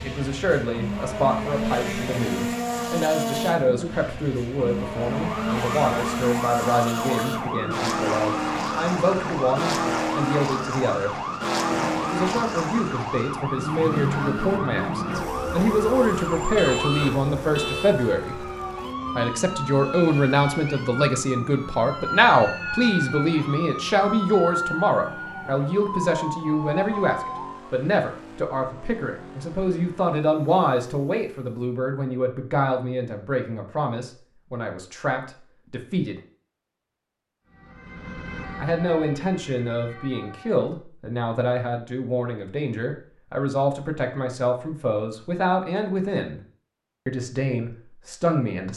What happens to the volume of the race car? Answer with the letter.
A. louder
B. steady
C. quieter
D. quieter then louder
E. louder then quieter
C.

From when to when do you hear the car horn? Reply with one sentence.
The car horn can be heard from 16.6 to 17.9 s.